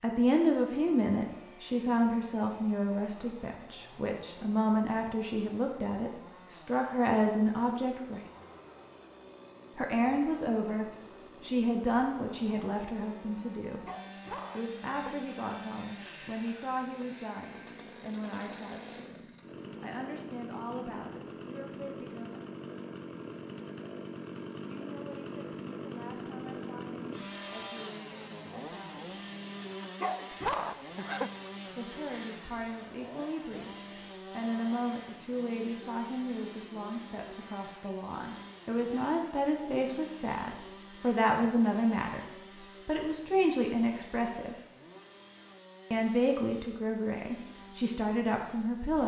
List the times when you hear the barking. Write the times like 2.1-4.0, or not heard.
13.8-15.3, 30.0-31.5.